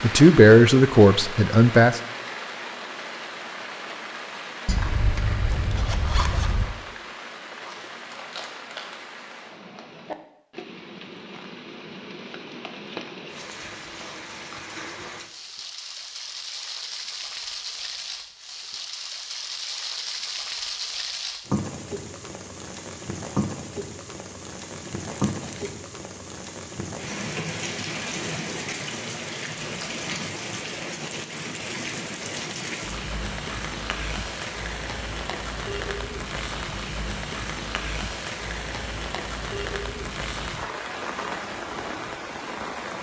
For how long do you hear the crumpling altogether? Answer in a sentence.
You can hear the crumpling for 3 seconds altogether.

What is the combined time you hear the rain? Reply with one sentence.
The rain can be heard for 43 seconds in total.